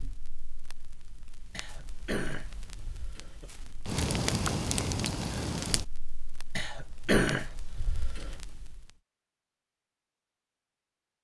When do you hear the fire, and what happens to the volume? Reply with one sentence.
You can hear the fire from 0.0 to 8.9 s, getting louder then quieter.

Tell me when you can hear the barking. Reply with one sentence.
You can't hear the barking here.